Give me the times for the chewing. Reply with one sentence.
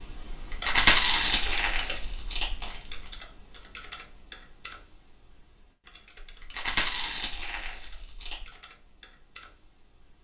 The chewing can be heard from 0.3 to 3.1 s and from 6.2 to 8.6 s.